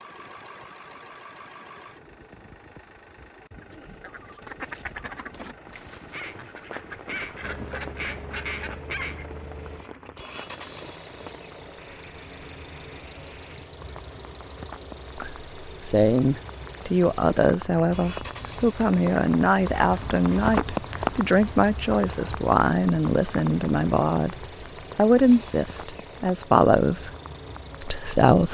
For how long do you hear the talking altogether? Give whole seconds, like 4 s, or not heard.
12 s.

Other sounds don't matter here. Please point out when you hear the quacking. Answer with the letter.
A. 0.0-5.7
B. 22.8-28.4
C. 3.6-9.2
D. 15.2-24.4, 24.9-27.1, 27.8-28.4
C.